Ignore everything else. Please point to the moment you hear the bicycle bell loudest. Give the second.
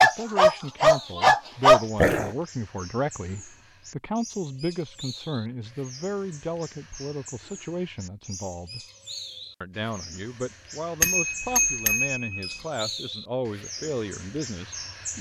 11 s.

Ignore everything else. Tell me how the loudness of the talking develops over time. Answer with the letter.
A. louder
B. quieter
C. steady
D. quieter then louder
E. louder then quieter
C.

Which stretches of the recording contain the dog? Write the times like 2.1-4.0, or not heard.
0.0-2.3.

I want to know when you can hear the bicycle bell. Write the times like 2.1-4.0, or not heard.
11.0-12.6.